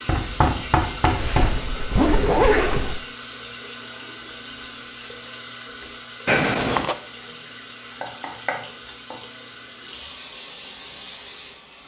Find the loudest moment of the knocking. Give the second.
1 s.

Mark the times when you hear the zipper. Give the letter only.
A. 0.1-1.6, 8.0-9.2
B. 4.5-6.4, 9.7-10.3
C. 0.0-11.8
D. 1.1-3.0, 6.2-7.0
D.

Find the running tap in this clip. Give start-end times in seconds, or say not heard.
0.0-11.8.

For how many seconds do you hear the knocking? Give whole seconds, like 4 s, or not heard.
3 s.